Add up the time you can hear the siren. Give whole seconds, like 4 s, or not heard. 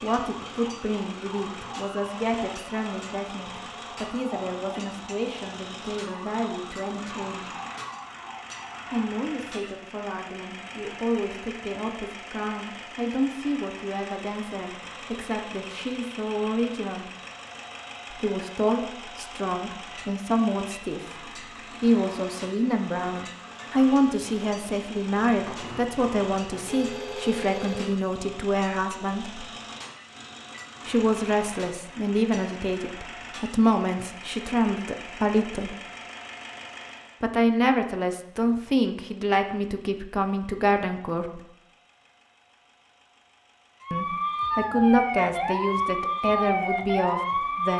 13 s.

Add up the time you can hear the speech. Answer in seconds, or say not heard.
40 s.